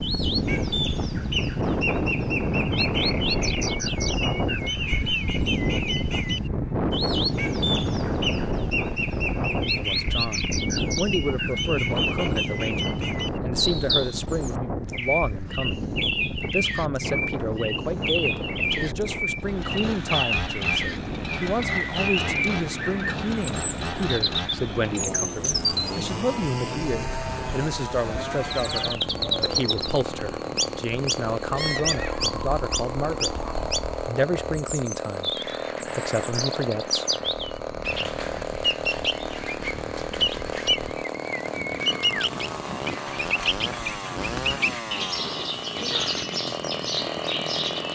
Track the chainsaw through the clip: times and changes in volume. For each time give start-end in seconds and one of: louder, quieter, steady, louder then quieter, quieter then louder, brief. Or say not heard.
19.4-47.9 steady.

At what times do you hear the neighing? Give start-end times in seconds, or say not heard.
31.6-32.2.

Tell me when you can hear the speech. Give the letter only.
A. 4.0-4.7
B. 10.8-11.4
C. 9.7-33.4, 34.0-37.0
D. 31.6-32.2
C.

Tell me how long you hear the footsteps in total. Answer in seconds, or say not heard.
not heard.